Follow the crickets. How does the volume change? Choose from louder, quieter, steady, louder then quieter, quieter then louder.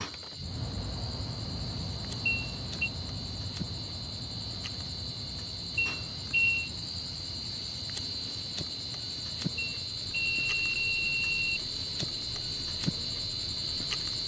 louder.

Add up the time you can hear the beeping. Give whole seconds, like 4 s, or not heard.
4 s.